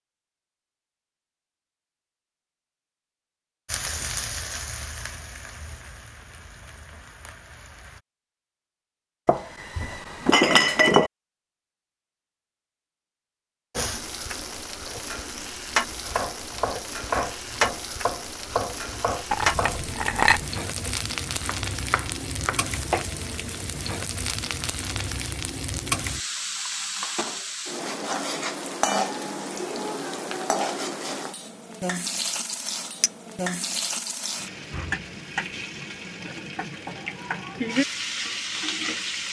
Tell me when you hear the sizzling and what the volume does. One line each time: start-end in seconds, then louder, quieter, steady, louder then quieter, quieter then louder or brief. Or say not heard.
3.6-8.0 quieter
13.7-39.2 steady.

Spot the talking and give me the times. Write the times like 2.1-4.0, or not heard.
not heard.